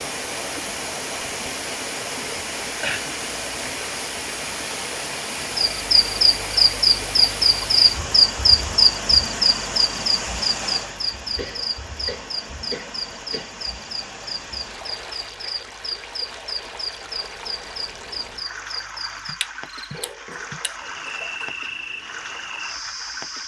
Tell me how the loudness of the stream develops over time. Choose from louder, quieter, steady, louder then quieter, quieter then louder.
quieter.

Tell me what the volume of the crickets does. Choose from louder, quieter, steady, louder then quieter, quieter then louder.
quieter.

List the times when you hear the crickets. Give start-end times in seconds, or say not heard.
5.5-23.4.